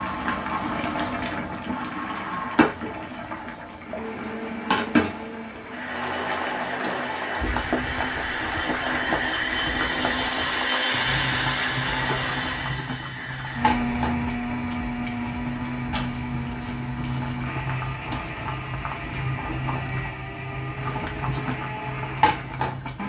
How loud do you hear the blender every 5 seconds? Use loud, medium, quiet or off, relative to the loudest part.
medium, loud, loud, medium, medium.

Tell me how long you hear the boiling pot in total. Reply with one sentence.
The boiling pot can be heard for 23 seconds in total.